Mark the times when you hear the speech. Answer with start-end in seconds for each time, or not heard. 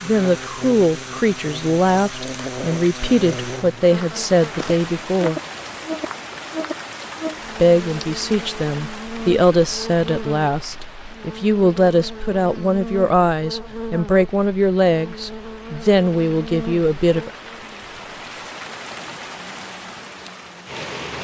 0.0-5.4, 7.5-17.3.